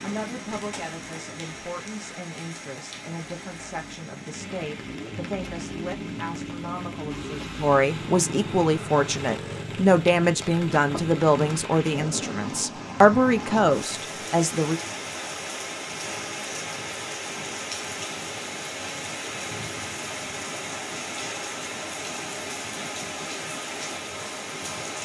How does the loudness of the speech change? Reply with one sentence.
The volume of the speech goes up.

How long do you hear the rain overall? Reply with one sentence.
The rain can be heard for 25 seconds in total.